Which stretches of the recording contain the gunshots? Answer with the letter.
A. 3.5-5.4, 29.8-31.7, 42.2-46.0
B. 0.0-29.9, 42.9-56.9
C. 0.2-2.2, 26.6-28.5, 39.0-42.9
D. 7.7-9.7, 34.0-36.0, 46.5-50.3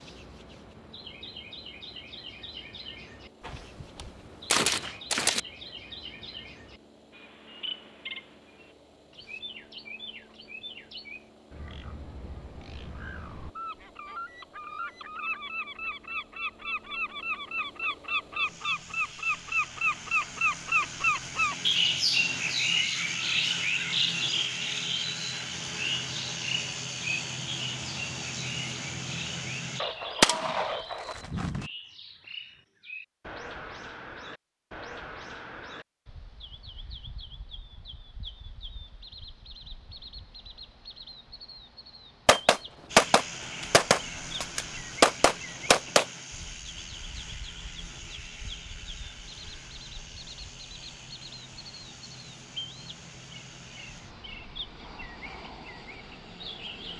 A.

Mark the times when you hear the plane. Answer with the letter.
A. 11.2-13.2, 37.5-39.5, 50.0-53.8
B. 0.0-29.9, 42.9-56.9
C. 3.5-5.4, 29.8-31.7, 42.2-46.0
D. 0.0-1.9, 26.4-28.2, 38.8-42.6
B.